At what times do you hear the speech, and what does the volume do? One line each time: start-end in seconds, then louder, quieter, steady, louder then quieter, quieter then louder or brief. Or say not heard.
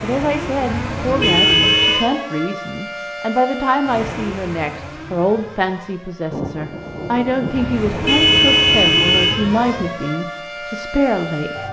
0.0-11.6 steady.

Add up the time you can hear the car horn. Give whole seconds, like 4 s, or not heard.
3 s.